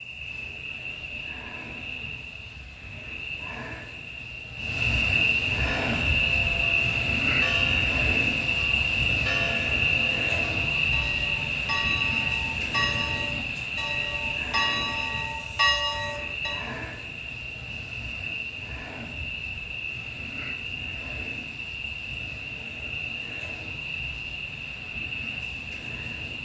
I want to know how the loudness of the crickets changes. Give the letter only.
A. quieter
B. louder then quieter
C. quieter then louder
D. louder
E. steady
B.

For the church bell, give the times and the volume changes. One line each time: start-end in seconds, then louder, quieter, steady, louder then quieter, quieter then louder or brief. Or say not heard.
5.8-16.6 louder.